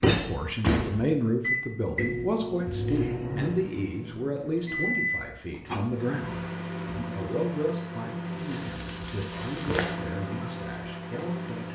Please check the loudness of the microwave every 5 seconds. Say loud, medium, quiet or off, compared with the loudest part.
loud, medium, medium.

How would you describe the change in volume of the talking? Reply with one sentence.
The loudness of the talking goes down.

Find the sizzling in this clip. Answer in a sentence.
The sizzling can be heard from 8.3 to 9.9 s.